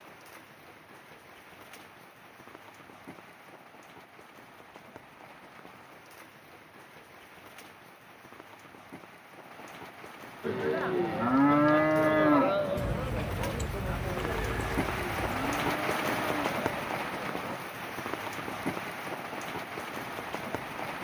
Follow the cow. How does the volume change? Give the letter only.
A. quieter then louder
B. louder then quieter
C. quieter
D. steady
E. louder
C.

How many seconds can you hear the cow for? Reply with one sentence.
You can hear the cow for 7 seconds altogether.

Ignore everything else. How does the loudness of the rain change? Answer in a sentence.
The loudness of the rain goes up.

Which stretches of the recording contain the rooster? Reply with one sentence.
The rooster can be heard from 12.8 to 15.6 s.